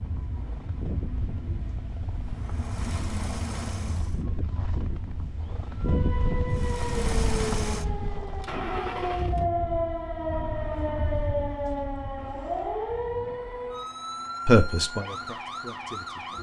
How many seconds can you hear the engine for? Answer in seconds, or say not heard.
14 s.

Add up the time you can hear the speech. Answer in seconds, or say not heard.
2 s.